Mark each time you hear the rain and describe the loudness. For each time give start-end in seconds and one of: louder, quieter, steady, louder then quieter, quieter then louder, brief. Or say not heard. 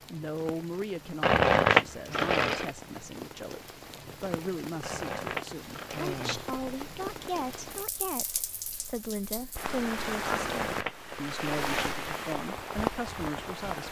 0.0-13.8 louder.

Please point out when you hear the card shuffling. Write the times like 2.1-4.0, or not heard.
1.2-2.7, 4.8-6.3, 10.3-11.6.